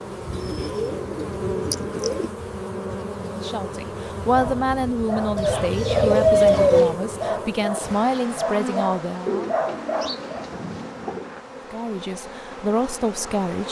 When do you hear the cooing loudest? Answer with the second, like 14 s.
6 s.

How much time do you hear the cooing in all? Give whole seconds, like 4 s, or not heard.
6 s.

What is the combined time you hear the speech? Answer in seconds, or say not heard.
8 s.